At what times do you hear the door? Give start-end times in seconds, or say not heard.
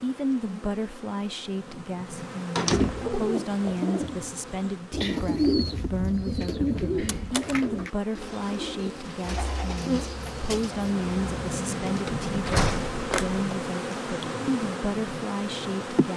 2.5-3.2, 7.0-7.6, 12.1-13.4.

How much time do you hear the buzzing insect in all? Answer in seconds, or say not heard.
16 s.